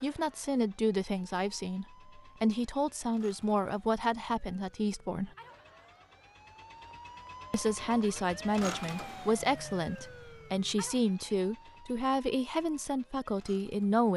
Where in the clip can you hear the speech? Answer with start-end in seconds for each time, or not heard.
0.0-5.3, 7.5-14.1.